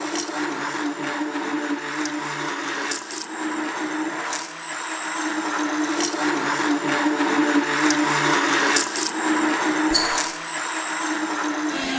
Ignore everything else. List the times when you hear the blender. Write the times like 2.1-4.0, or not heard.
0.0-11.9.